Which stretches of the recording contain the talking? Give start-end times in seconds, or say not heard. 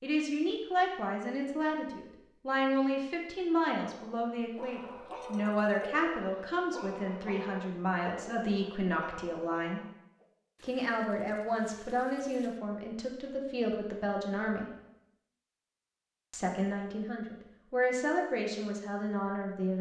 0.0-9.8, 10.6-14.7, 16.3-19.7.